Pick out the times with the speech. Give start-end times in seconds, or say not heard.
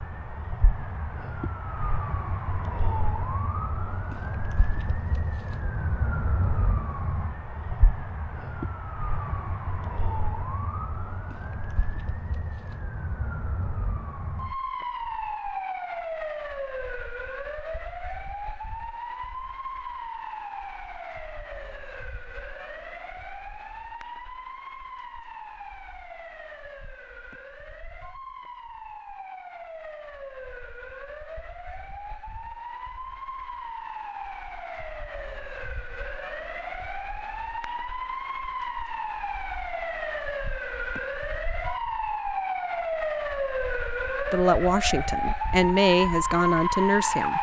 44.3-47.3.